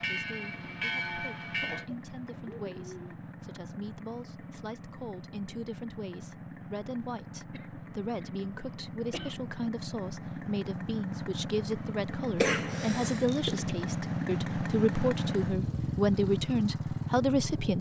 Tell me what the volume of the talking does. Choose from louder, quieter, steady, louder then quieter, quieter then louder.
louder.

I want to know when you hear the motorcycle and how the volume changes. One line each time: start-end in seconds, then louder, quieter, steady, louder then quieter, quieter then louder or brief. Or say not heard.
0.0-17.7 louder.